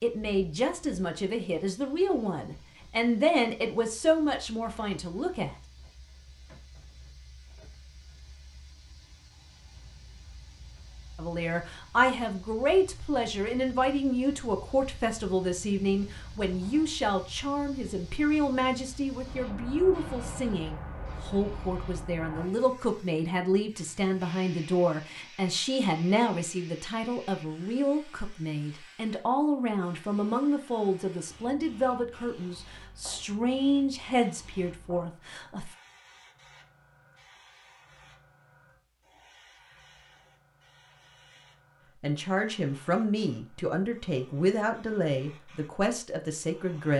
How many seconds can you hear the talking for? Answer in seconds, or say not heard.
35 s.